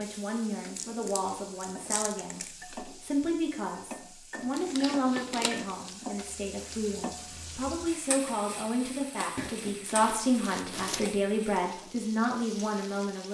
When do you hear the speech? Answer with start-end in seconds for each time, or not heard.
0.0-13.3.